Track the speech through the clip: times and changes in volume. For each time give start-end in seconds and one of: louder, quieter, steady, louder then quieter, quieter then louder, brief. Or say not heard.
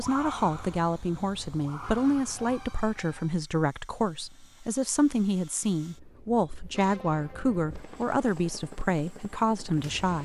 0.0-10.2 steady.